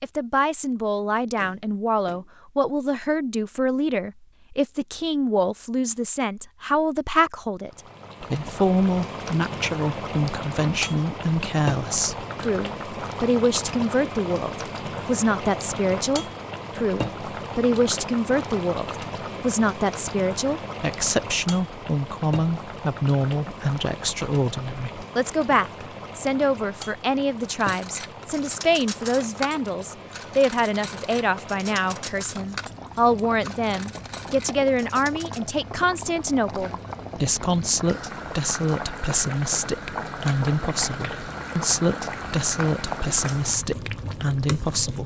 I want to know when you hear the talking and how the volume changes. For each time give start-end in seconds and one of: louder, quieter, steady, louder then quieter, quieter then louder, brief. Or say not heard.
0.0-45.0 steady.